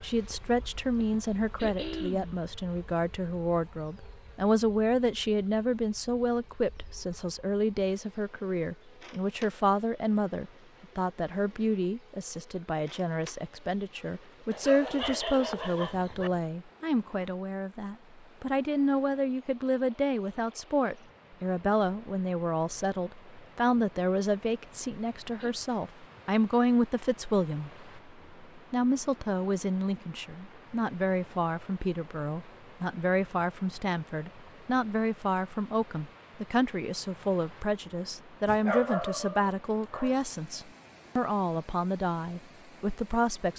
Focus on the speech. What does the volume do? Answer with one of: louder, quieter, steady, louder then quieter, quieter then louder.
steady.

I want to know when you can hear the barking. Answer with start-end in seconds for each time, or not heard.
14.5-16.3, 38.5-40.2.